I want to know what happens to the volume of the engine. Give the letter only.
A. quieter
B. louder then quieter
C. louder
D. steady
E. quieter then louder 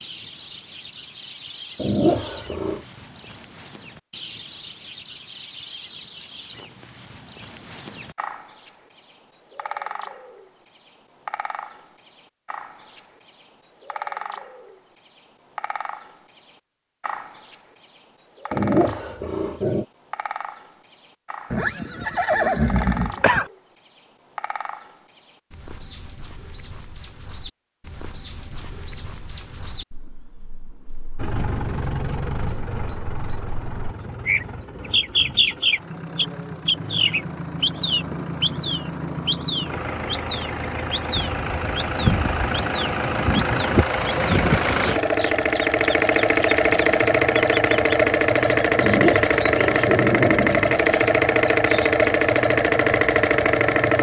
C.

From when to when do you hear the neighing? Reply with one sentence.
You can hear the neighing from 21.5 to 23.5 s.